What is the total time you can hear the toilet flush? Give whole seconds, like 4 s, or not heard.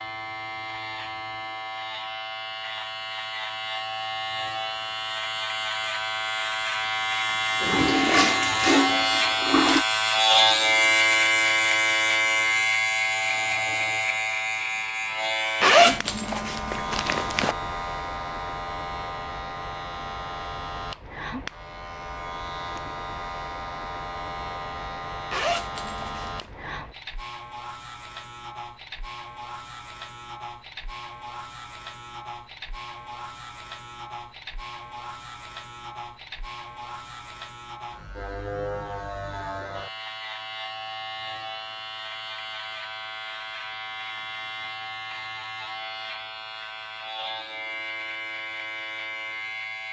2 s.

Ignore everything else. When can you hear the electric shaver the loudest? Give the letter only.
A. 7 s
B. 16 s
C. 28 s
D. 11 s
D.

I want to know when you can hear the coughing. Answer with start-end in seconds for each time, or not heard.
not heard.